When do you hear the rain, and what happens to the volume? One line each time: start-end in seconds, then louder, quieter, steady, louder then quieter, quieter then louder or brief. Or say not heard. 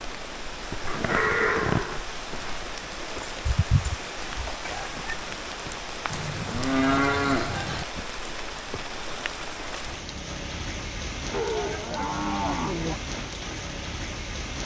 0.0-14.6 steady.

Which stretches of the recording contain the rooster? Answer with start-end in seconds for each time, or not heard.
3.2-5.2.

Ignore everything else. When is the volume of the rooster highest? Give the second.
4 s.